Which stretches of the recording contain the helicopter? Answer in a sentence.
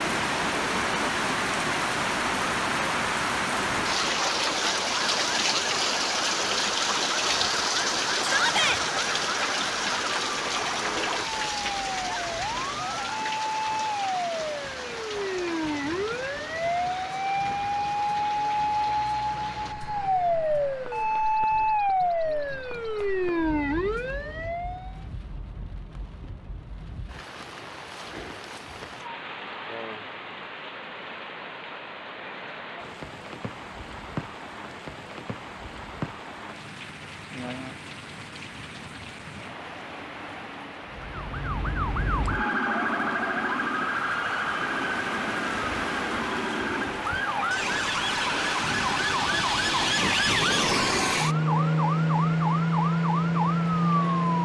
You can't hear the helicopter here.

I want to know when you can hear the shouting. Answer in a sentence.
You can hear the shouting from 8.2 to 8.8 s.